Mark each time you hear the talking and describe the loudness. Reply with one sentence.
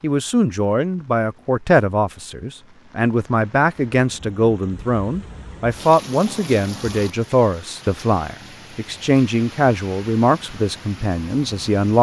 You can hear the talking from 0.0 to 11.9 s, at a steady volume.